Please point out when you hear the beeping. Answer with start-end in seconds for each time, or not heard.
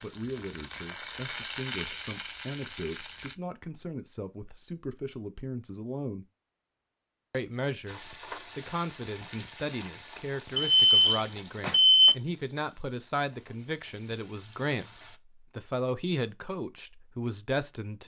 10.6-12.2.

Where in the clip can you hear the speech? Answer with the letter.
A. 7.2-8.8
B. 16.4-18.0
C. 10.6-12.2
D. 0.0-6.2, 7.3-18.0
D.